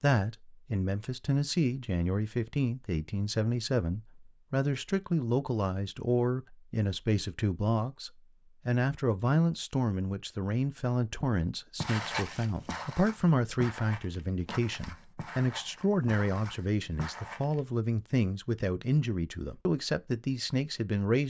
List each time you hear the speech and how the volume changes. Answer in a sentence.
You can hear the speech from 0.0 to 21.2 s, at a steady volume.